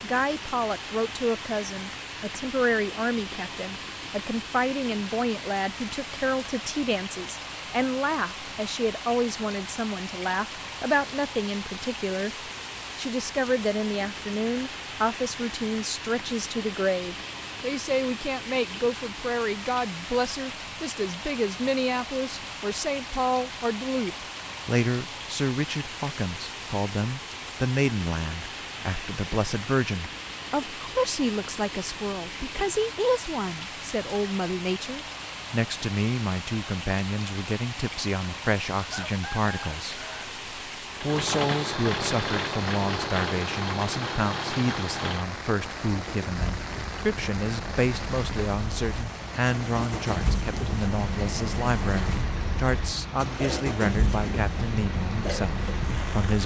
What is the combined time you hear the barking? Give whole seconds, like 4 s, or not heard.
not heard.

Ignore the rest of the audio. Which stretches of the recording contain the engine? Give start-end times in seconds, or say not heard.
41.0-56.4.